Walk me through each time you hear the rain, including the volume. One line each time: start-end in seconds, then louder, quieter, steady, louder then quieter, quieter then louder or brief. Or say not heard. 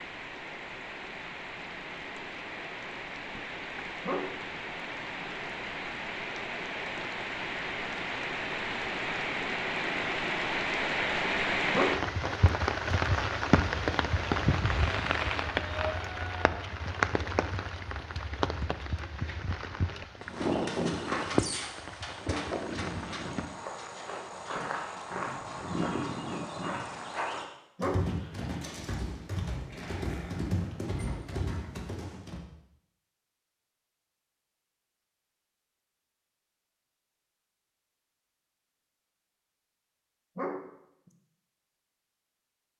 0.0-23.6 louder then quieter.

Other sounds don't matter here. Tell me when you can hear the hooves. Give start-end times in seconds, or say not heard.
20.2-32.4.